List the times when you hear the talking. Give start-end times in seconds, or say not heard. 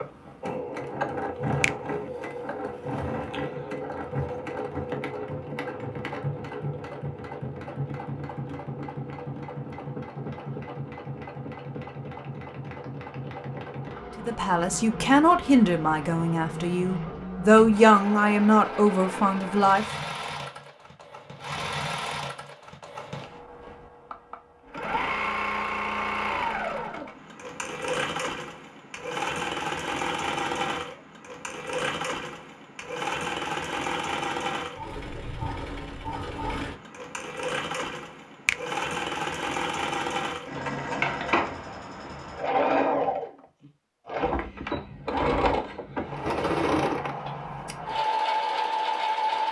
14.2-19.9.